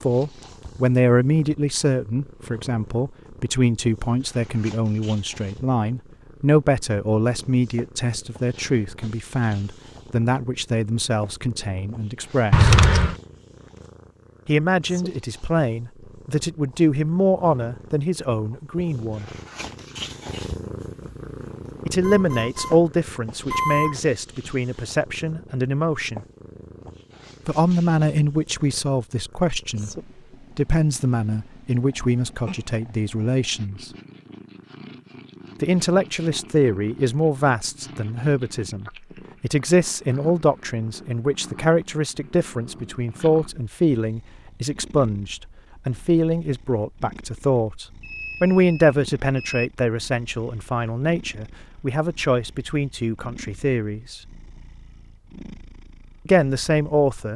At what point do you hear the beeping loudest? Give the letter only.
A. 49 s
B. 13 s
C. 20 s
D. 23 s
B.